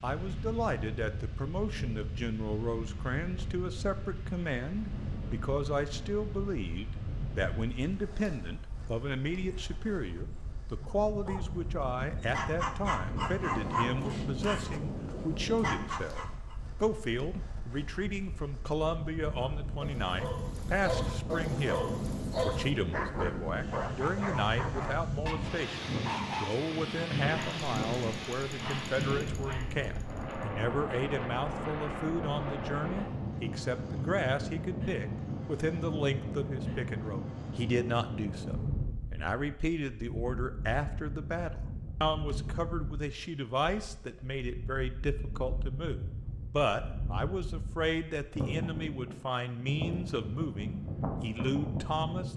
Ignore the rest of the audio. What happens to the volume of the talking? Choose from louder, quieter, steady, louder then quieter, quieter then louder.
steady.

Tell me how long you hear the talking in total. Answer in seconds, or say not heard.
52 s.